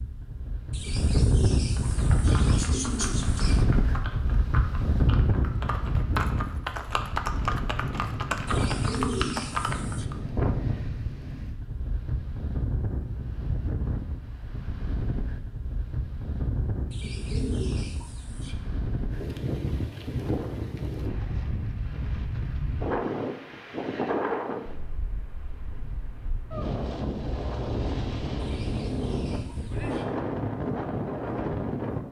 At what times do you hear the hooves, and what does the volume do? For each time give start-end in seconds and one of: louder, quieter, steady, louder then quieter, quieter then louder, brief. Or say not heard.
1.7-10.2 louder.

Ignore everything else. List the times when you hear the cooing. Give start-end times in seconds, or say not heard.
0.7-3.6, 8.4-10.1, 16.9-18.6, 28.4-30.1.